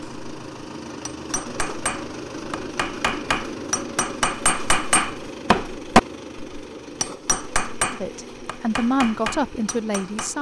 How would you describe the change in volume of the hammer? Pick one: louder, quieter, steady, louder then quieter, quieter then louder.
louder then quieter.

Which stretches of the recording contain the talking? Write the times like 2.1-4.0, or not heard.
7.9-10.3.